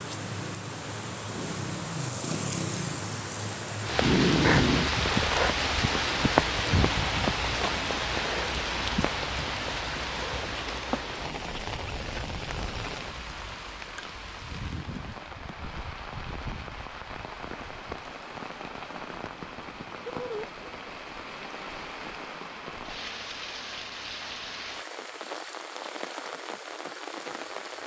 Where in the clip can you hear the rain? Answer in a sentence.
You can hear the rain from 0.0 to 27.8 s.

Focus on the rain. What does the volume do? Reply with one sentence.
The loudness of the rain goes down.